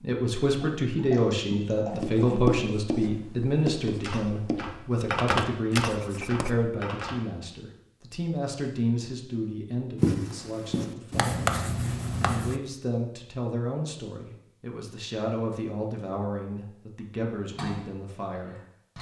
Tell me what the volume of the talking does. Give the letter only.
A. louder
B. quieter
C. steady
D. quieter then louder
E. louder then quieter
B.